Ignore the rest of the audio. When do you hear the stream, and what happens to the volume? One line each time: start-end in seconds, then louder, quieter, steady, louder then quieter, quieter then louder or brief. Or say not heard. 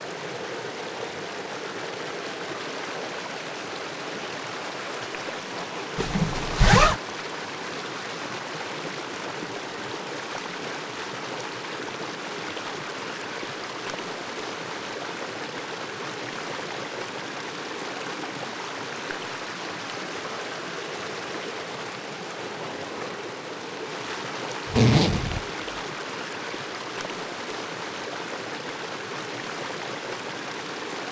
0.0-31.0 steady.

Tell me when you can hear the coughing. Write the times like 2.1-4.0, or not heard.
not heard.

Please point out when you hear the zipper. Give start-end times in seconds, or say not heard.
6.0-7.0, 24.6-25.4.